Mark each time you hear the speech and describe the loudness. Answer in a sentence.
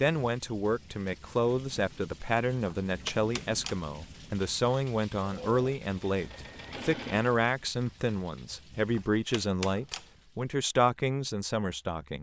The speech can be heard from 0.0 to 12.1 s, at a steady volume.